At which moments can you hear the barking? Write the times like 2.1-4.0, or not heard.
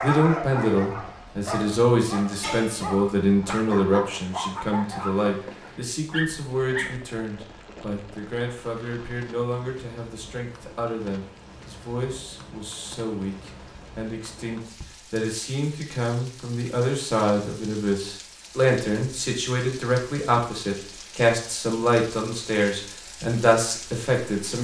0.0-7.0.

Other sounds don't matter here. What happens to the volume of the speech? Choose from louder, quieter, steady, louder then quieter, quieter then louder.
quieter then louder.